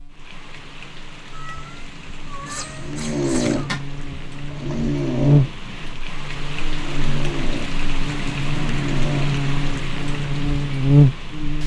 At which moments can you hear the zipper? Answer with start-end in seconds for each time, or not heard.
3.0-3.9.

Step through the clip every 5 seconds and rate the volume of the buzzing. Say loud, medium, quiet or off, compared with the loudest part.
quiet, medium, loud.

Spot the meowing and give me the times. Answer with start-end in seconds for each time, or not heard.
1.3-3.7.